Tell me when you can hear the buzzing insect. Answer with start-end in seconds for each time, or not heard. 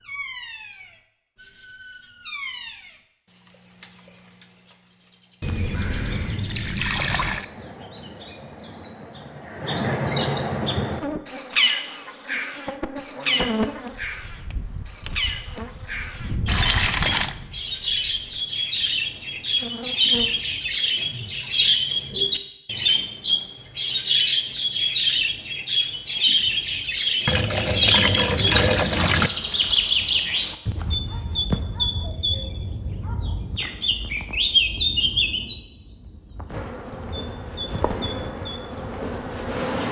10.8-20.4, 36.5-39.8.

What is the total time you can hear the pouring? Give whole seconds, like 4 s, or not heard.
5 s.